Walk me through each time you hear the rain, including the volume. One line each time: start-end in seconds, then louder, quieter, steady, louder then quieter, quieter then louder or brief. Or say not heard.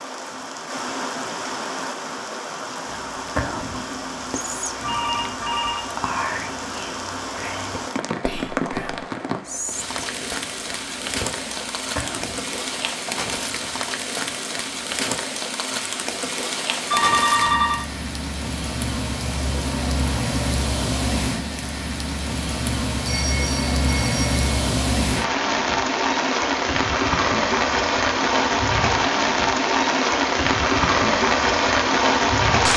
0.0-32.7 louder.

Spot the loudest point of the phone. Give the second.
17 s.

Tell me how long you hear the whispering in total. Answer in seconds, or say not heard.
10 s.